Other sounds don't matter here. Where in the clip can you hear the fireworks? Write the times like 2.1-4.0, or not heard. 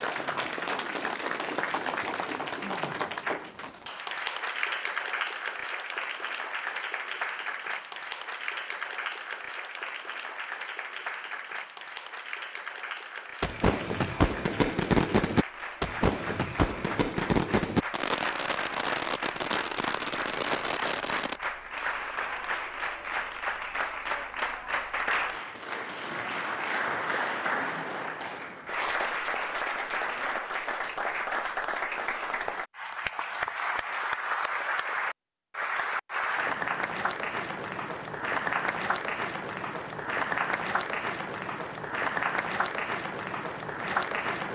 13.4-21.4.